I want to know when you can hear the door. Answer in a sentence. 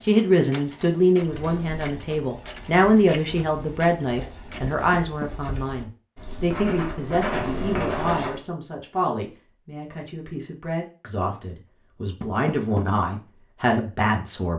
You can hear the door from 4.7 to 5.3 s and from 12.2 to 12.8 s.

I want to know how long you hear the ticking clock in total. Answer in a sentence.
The ticking clock can't be heard in this clip.